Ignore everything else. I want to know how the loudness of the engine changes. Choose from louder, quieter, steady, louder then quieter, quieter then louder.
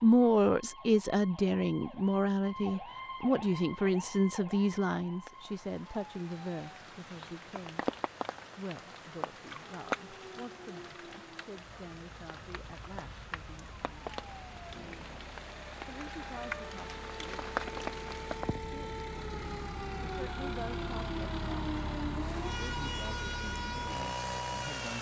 louder.